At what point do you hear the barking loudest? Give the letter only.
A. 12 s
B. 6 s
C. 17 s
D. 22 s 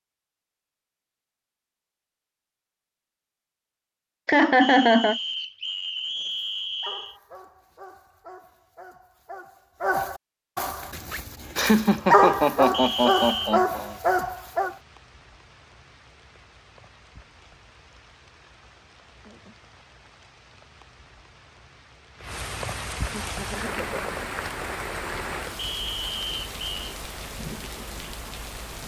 A.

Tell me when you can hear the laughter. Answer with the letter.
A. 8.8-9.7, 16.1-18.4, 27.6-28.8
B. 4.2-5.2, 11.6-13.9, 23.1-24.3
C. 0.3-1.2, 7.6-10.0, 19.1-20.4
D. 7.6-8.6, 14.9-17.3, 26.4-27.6
B.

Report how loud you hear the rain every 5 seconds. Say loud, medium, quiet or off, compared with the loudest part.
off, off, quiet, quiet, loud, loud.